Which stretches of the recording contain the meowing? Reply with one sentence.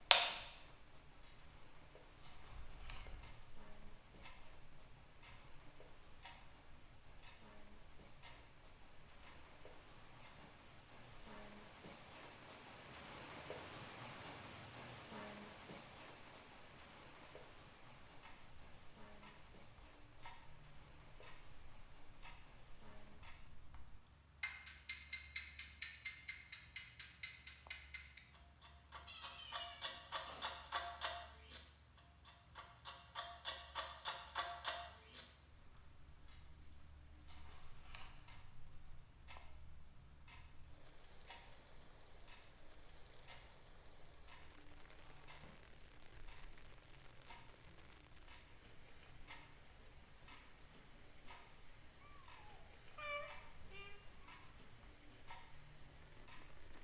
The meowing can be heard from 2.5 to 3.4 s, from 29.1 to 30.8 s and from 52.0 to 54.2 s.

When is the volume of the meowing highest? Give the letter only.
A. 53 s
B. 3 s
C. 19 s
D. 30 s
A.